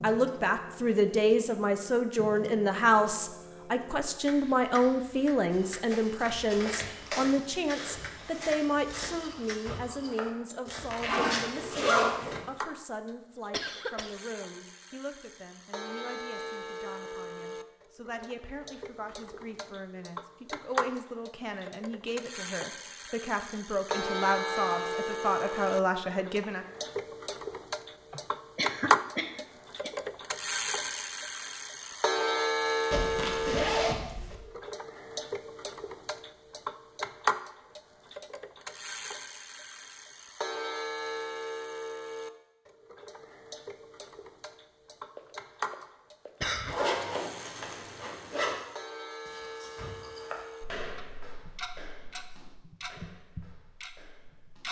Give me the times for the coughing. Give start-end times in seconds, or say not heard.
13.5-14.2, 28.1-29.9, 45.1-47.0.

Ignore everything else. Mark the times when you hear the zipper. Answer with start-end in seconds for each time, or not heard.
10.9-12.4, 32.9-34.4, 46.6-48.5.